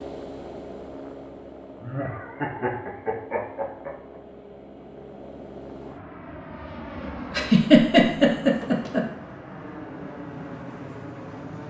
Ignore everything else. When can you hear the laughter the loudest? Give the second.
8 s.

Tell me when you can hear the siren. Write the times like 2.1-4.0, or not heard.
not heard.